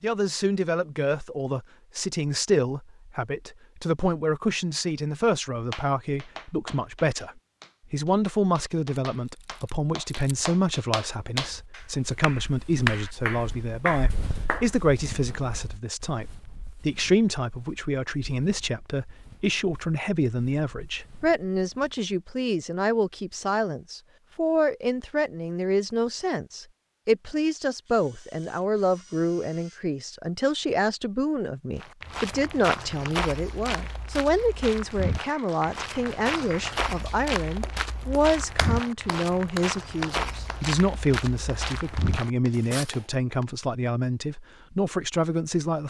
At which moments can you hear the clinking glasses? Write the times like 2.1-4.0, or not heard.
not heard.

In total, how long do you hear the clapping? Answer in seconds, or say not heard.
18 s.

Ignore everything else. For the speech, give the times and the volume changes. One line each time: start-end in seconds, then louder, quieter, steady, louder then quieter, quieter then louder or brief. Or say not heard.
0.0-45.8 steady.